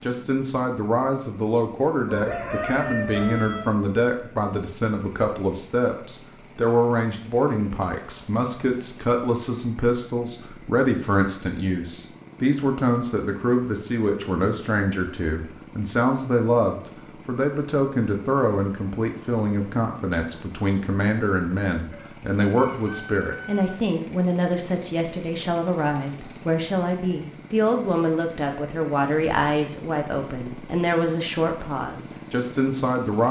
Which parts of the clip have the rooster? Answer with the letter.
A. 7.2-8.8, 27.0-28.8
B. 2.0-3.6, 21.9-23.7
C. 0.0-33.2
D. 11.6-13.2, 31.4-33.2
B.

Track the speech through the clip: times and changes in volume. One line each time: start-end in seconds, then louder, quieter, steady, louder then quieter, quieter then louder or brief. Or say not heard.
0.0-33.2 steady.